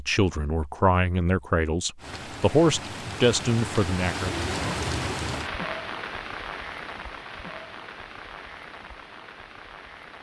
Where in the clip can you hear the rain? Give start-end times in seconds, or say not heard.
1.9-10.1.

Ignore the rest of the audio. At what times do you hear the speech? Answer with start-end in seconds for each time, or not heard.
0.0-4.5.